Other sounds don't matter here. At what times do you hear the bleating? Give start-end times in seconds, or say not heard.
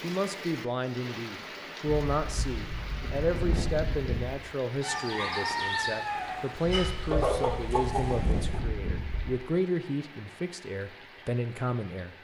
1.9-4.3, 6.6-9.3.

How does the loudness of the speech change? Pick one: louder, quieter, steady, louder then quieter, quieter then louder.
steady.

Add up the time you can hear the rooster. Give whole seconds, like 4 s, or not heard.
4 s.